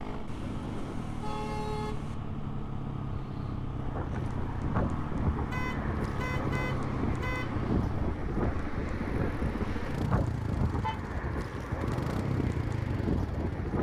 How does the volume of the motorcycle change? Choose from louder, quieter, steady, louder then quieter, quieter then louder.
steady.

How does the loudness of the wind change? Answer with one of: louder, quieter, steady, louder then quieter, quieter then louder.
steady.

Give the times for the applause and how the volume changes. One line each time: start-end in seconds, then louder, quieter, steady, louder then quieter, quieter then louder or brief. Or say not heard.
not heard.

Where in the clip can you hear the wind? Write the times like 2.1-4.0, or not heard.
3.8-13.7.